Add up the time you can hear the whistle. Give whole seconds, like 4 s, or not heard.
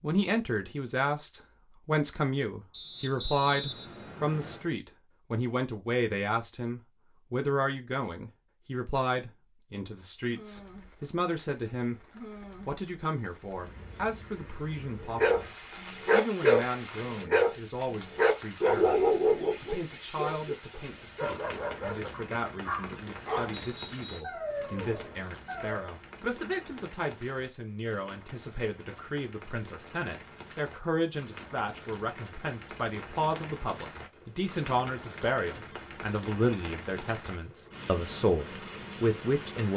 3 s.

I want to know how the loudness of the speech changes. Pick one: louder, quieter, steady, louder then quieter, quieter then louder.
quieter then louder.